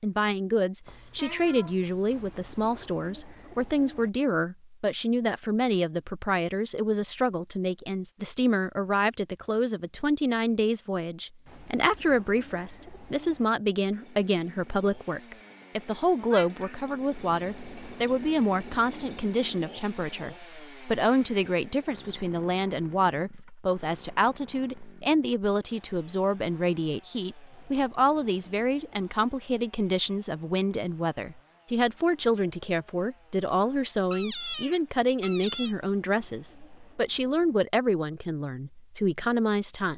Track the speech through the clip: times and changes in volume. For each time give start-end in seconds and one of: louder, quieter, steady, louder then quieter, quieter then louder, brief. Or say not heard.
0.0-39.9 steady.